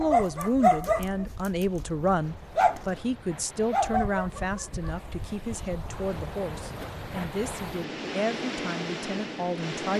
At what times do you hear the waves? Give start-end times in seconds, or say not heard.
0.0-9.9.